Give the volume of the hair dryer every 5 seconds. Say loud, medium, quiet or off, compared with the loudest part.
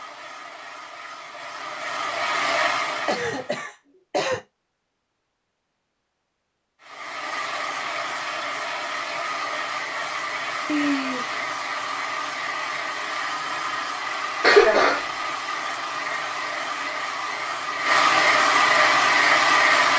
medium, medium, medium, loud.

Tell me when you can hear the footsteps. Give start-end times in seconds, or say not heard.
not heard.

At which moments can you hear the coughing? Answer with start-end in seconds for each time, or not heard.
3.0-4.4, 10.7-11.4, 14.4-15.0.